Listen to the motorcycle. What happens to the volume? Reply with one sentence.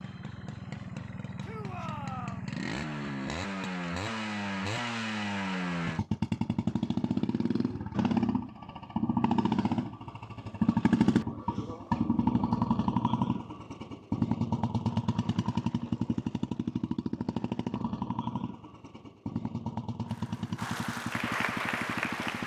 The volume of the motorcycle goes up, then down.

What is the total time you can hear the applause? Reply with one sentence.
The applause can be heard for 2 seconds in total.